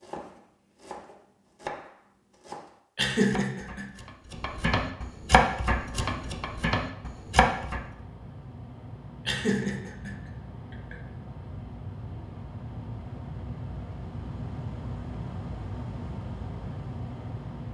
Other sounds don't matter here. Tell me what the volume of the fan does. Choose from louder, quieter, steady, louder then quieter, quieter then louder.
louder.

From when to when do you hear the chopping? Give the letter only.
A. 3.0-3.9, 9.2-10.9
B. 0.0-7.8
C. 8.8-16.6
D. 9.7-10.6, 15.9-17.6
B.